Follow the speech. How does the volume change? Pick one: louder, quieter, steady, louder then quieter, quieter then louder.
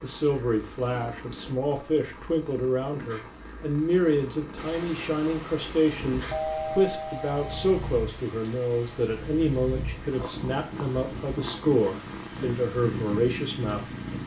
steady.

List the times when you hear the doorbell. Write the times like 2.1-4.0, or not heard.
6.3-7.8.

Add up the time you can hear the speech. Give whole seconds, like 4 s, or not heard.
14 s.